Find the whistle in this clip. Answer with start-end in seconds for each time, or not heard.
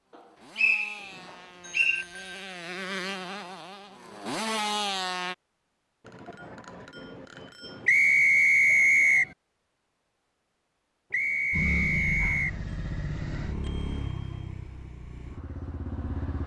0.6-2.0, 7.8-9.3, 11.1-12.6.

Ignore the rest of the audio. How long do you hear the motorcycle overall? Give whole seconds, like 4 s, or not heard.
10 s.